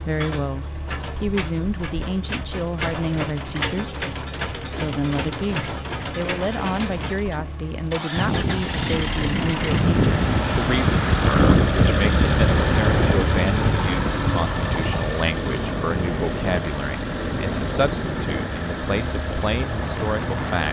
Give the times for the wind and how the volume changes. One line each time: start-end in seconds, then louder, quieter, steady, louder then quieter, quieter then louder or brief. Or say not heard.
8.2-20.6 quieter.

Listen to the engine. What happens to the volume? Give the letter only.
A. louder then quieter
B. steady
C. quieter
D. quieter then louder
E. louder
A.